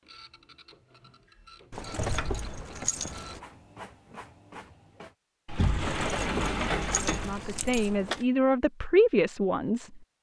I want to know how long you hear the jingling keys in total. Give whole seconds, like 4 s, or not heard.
4 s.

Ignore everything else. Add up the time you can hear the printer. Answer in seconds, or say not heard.
5 s.